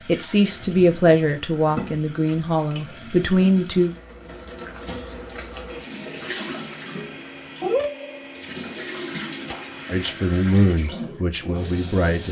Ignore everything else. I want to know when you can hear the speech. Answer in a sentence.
The speech can be heard from 0.0 to 3.9 s and from 9.9 to 12.2 s.